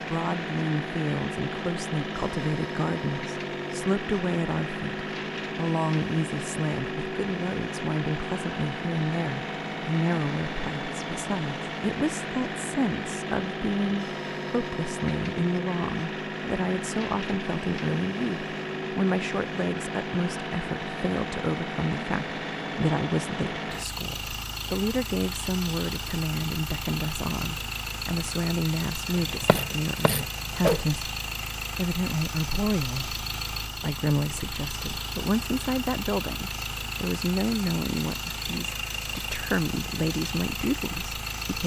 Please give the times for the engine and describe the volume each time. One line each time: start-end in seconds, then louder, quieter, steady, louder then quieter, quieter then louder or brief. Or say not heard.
0.0-41.6 steady.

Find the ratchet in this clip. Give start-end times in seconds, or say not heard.
29.1-30.8.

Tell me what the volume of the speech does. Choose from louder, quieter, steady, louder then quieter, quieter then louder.
steady.